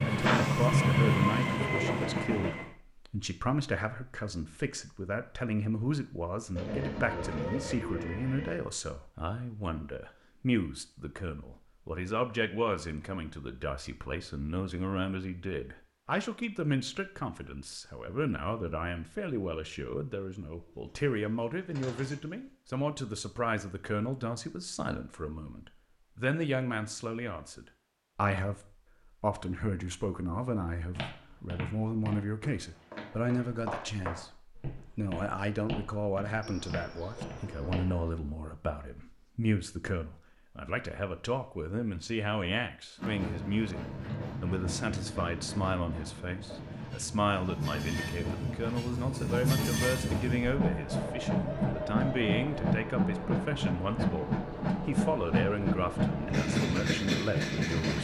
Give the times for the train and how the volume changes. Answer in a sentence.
You can hear the train briefly from 0.0 to 2.7 s; and from 43.0 to 57.9 s, getting louder.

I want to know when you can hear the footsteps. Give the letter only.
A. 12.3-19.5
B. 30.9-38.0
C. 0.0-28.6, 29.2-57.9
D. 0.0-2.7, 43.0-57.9
B.